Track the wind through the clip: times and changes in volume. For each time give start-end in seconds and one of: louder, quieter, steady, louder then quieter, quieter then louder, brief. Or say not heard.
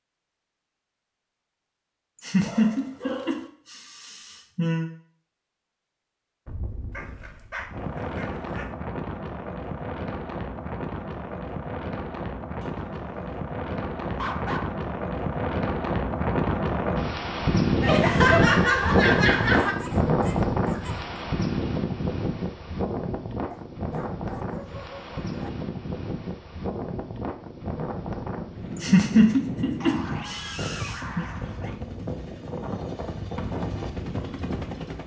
6.5-35.0 louder then quieter.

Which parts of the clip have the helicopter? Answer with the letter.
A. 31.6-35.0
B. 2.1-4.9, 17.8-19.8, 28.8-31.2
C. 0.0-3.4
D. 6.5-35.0
A.